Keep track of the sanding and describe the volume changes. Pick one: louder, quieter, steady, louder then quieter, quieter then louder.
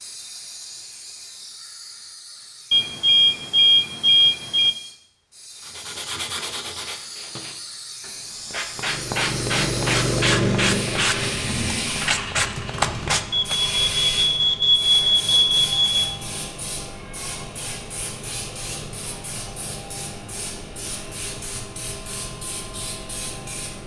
louder.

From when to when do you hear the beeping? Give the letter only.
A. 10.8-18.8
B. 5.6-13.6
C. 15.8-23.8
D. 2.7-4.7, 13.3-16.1
D.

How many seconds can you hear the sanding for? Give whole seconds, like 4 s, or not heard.
8 s.